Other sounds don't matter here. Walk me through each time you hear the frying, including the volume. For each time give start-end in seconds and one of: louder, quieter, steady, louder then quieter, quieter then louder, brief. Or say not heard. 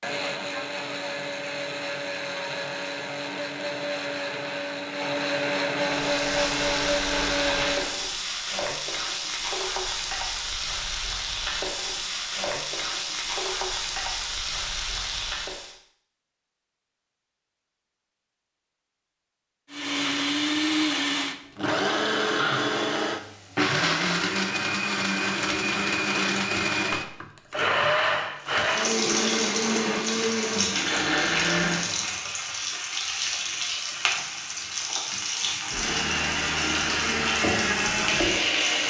5.8-15.8 steady
28.4-38.8 steady.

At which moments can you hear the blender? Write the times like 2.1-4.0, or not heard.
0.0-8.0, 19.7-31.9, 35.6-38.8.